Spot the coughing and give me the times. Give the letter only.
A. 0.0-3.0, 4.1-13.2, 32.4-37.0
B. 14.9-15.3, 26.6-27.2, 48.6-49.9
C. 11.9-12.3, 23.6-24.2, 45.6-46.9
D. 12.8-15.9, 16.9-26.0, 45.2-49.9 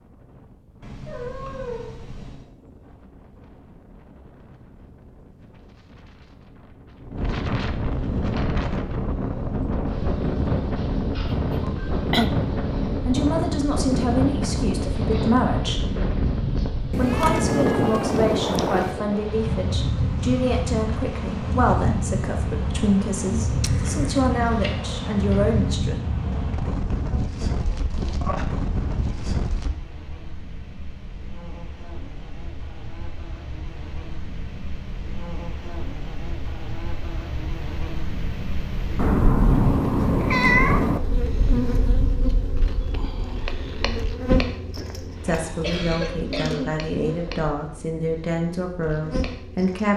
C.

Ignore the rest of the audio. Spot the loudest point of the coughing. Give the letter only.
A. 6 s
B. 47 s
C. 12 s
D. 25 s
C.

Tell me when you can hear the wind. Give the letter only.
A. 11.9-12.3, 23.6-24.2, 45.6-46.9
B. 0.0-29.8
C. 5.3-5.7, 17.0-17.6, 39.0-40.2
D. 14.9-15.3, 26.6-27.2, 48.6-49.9
B.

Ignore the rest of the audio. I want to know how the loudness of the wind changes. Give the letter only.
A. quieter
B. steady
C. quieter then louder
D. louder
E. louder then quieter
D.